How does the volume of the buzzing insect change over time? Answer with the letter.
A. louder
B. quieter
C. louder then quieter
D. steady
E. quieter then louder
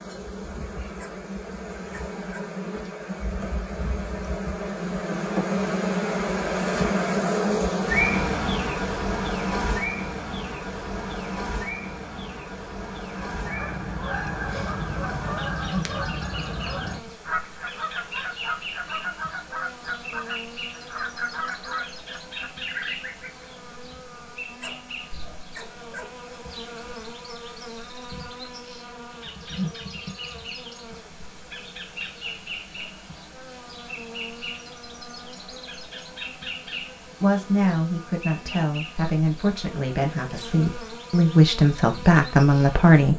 B.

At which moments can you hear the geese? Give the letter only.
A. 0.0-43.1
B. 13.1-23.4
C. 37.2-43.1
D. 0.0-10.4
B.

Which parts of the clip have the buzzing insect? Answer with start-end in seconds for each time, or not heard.
0.0-43.1.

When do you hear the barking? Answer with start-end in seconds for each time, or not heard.
0.9-2.5, 24.6-26.1.